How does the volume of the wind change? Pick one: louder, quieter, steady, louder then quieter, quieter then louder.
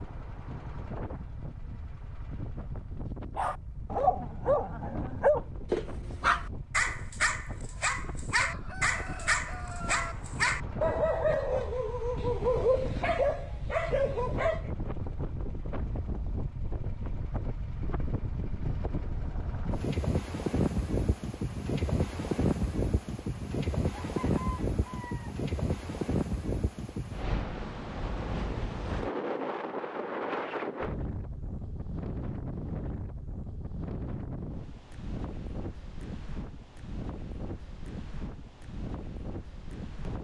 louder then quieter.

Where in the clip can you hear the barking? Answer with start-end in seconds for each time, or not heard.
3.4-14.7.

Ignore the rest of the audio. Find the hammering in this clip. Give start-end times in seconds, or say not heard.
not heard.